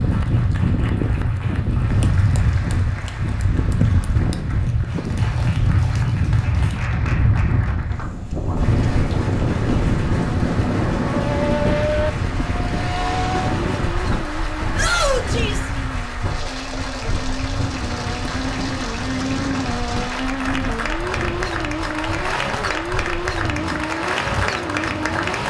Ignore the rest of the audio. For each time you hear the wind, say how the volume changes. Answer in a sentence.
You can hear the wind from 0.0 to 25.4 s, getting quieter.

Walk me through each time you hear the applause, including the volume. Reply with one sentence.
You can hear the applause from 0.0 to 25.4 s, getting louder.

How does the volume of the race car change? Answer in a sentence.
The loudness of the race car goes down, then up.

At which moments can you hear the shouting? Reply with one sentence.
The shouting can be heard from 14.8 to 15.7 s.